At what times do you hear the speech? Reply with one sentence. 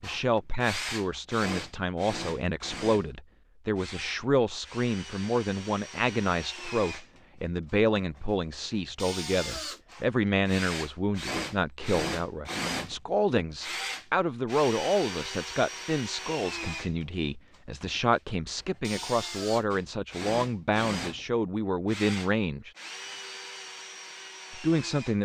The speech can be heard from 0.0 to 22.7 s and from 24.5 to 25.2 s.